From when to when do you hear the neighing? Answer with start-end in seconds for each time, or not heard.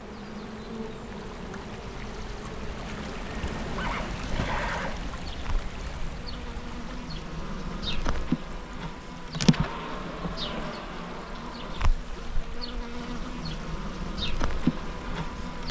3.8-5.0.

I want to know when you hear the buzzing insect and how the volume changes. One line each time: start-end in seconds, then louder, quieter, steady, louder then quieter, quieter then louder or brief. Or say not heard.
0.0-15.6 louder.